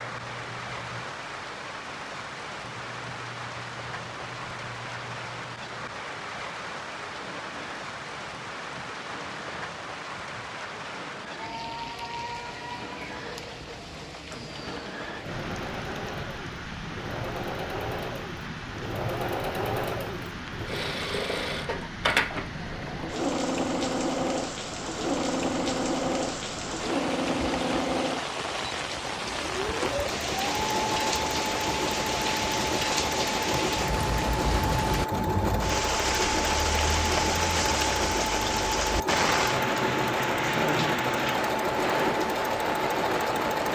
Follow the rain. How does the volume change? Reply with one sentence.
The volume of the rain goes up.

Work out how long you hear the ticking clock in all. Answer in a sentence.
The ticking clock can't be heard in this clip.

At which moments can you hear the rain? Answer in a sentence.
You can hear the rain from 0.0 to 43.7 s.